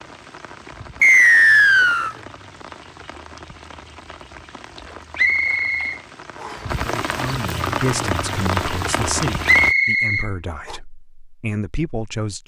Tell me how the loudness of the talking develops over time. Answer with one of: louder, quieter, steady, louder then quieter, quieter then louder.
quieter then louder.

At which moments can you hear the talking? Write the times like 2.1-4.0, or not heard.
6.8-12.4.